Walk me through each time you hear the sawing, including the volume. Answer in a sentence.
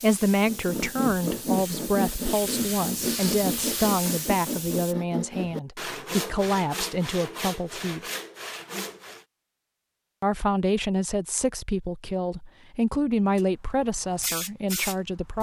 The sawing can be heard from 0.5 to 9.2 s, getting quieter.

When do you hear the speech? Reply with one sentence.
You can hear the speech from 0.0 to 8.0 s and from 10.2 to 15.3 s.